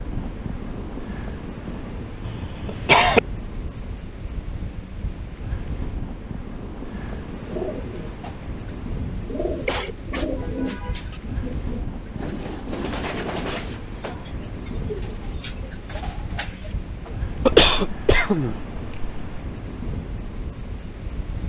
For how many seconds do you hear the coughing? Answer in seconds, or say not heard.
3 s.